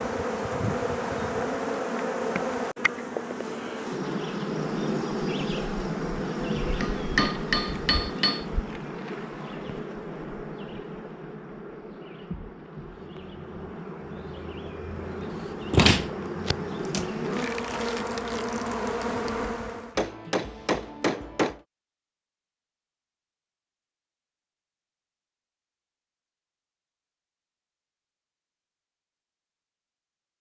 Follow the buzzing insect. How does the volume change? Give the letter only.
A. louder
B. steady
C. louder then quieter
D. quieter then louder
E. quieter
D.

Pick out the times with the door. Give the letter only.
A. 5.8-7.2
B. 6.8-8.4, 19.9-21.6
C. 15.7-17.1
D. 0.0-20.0
C.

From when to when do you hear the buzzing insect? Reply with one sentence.
You can hear the buzzing insect from 0.0 to 20.0 s.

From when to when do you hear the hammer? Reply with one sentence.
You can hear the hammer from 6.8 to 8.4 s and from 19.9 to 21.6 s.